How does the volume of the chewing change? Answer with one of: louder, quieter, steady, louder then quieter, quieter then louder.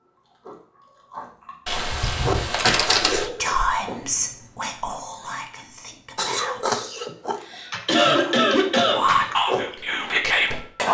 louder.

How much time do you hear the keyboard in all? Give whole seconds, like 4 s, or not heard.
4 s.